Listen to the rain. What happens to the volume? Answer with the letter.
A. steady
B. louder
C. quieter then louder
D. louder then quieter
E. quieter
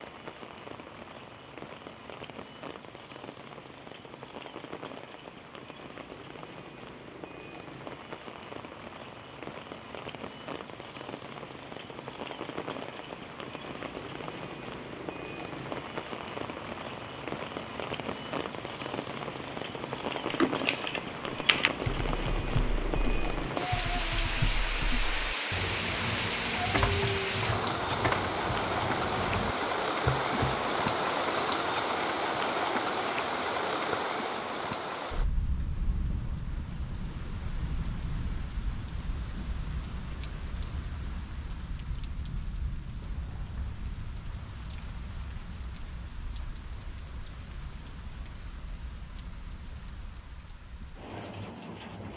D.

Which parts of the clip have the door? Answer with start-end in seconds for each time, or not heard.
43.0-43.9.